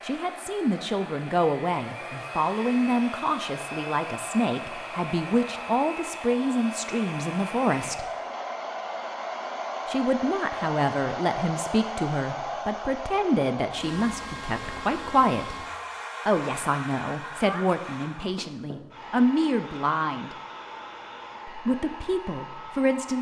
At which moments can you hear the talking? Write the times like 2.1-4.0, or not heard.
0.0-8.1, 9.8-15.7, 16.2-20.4, 21.4-23.1.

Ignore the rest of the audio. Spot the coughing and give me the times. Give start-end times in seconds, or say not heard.
not heard.